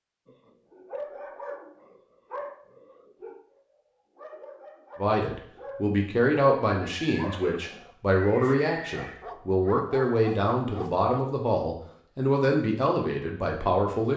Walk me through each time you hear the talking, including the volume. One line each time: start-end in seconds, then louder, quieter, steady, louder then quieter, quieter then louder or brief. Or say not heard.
5.0-14.1 steady.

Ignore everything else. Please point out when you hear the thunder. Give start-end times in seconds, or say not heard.
not heard.